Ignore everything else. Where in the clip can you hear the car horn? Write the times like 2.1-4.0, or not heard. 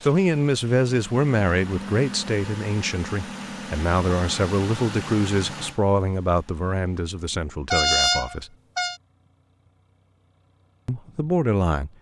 7.7-8.9.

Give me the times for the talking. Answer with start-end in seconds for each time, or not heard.
0.0-8.5, 10.8-11.9.